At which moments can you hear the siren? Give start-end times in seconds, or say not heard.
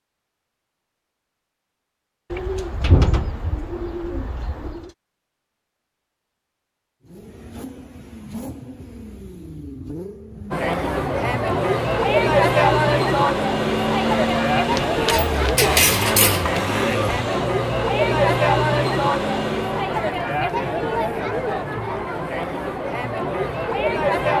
not heard.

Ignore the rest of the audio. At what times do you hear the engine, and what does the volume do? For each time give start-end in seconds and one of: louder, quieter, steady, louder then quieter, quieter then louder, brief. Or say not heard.
7.0-19.9 louder.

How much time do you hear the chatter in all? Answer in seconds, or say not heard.
14 s.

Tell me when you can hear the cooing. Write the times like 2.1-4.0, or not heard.
2.3-4.9, 14.8-16.6.